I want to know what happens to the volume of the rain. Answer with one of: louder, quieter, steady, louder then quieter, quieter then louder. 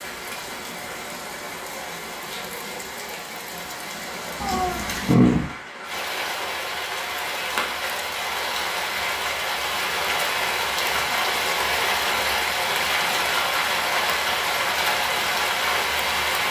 louder.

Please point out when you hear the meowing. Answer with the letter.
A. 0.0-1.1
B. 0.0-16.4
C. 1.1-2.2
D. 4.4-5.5
D.